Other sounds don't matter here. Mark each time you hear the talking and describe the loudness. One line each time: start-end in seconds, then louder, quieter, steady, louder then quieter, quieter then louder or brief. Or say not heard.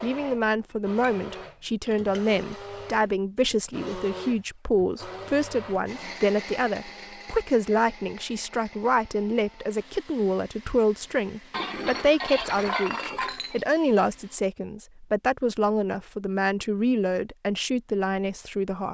0.0-18.8 steady.